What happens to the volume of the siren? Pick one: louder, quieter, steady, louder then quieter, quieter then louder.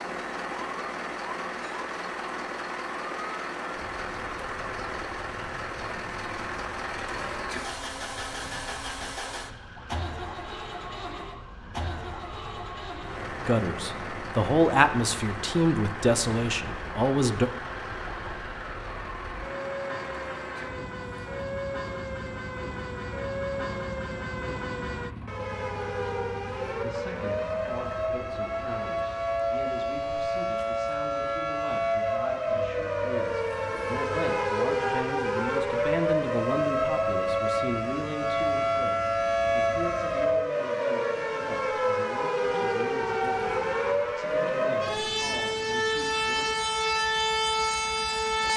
louder.